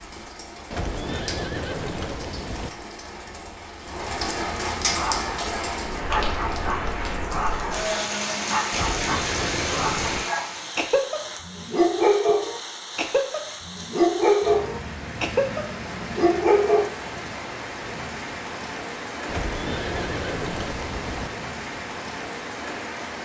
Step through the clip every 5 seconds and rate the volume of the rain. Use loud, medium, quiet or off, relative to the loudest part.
medium, loud, medium, medium, medium.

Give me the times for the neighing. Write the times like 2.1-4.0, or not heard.
0.7-2.7, 8.7-10.2, 19.2-21.3.